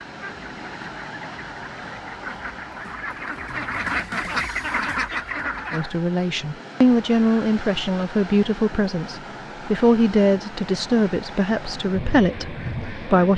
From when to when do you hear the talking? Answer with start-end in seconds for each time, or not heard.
5.7-13.3.